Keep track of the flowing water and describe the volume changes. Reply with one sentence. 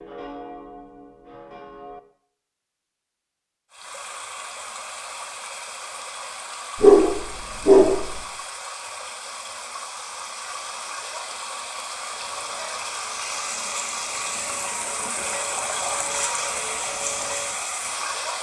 The volume of the flowing water goes up.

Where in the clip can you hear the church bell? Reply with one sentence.
You can hear the church bell from 0.0 to 2.0 s and from 12.1 to 17.6 s.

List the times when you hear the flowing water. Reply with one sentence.
You can hear the flowing water from 3.7 to 18.3 s.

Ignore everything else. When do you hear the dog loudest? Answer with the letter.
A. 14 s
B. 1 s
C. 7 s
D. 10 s
C.